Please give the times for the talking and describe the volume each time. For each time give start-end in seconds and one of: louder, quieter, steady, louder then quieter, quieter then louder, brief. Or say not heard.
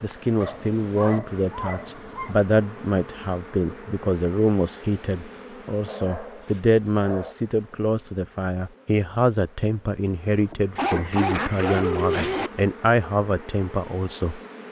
0.0-14.4 steady.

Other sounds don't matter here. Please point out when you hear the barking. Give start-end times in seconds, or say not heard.
0.4-2.5, 5.8-7.3, 10.8-12.5.